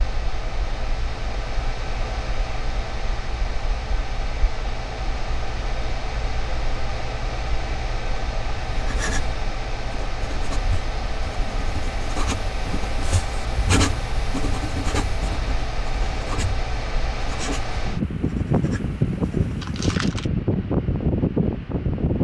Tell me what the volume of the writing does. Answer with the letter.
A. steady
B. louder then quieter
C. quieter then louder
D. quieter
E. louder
B.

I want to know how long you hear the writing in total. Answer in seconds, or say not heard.
11 s.